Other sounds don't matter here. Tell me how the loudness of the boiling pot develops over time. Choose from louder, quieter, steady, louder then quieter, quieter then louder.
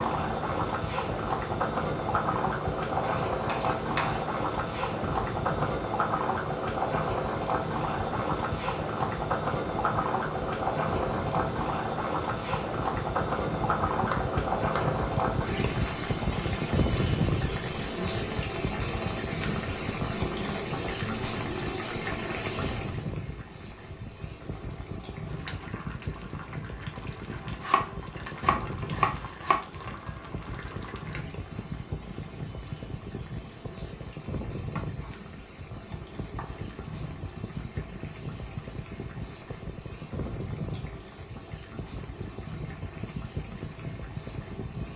quieter.